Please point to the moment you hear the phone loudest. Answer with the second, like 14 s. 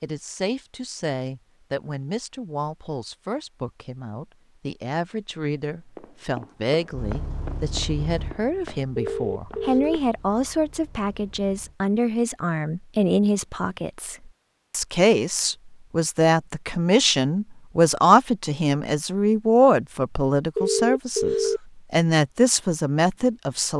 21 s.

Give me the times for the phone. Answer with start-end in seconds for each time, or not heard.
8.9-10.0, 20.6-21.6.